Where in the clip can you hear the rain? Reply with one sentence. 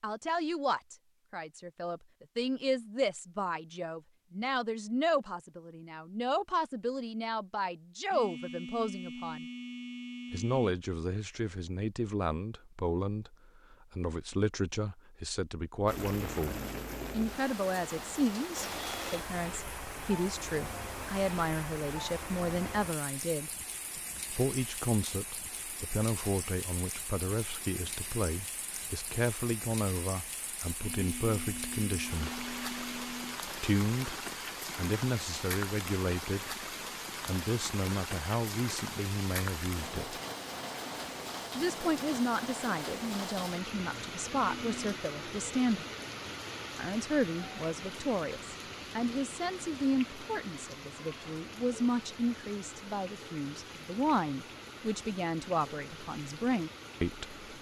You can hear the rain from 15.8 to 57.5 s.